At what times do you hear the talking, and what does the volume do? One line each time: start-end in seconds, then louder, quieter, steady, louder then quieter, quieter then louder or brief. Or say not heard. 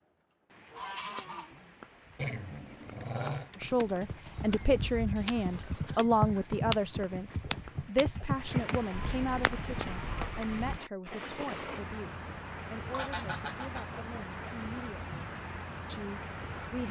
3.6-15.2 quieter
15.8-16.8 brief.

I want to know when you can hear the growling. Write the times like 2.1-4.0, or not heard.
2.1-3.5.